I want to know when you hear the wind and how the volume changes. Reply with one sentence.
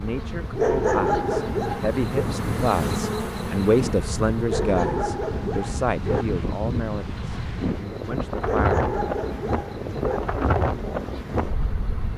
The wind can be heard from 0.0 to 12.1 s, getting louder.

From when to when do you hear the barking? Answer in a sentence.
You can hear the barking from 0.6 to 2.2 s, from 4.5 to 6.2 s and from 8.4 to 10.2 s.